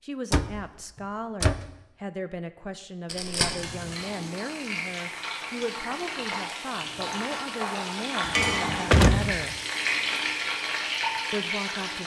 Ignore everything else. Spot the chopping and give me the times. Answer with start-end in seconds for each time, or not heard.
not heard.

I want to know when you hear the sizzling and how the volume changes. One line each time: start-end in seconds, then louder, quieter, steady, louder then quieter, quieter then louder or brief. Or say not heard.
3.5-12.0 louder.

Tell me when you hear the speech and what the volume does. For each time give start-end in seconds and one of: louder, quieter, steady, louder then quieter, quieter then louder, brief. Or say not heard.
0.0-9.6 steady
11.3-12.0 brief.